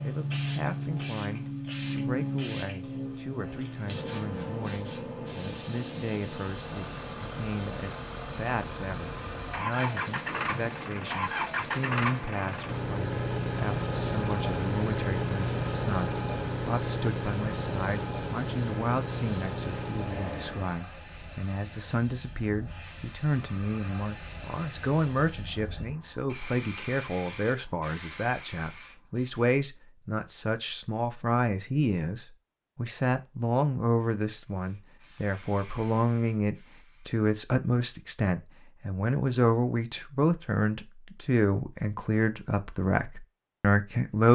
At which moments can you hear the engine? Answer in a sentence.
The engine can be heard from 6.5 to 20.8 s.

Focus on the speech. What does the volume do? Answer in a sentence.
The volume of the speech goes up.